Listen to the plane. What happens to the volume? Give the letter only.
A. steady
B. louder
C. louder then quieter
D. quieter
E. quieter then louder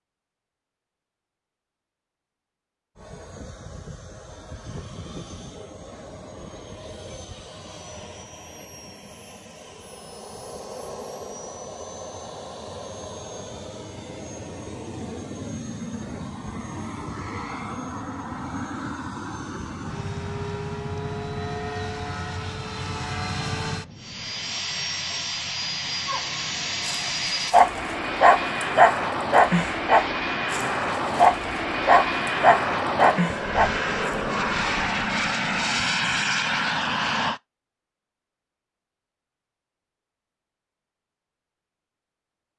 B.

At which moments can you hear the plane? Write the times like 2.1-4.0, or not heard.
3.0-37.4.